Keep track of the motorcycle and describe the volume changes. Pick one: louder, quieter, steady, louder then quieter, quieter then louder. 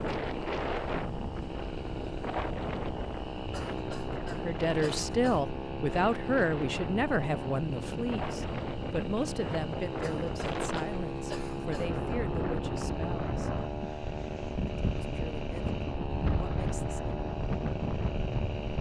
steady.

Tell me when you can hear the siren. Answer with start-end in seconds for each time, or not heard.
not heard.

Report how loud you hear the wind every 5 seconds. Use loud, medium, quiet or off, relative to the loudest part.
loud, medium, loud, loud.